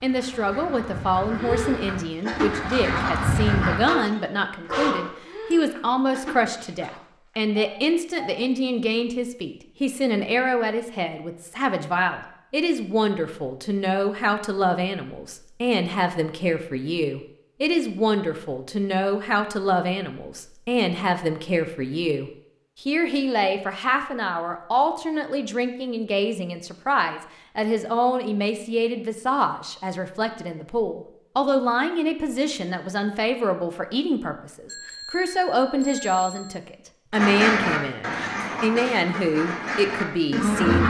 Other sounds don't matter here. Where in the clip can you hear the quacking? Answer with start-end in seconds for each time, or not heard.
0.0-3.8, 37.1-40.8.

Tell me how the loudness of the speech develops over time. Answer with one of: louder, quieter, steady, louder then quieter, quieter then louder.
steady.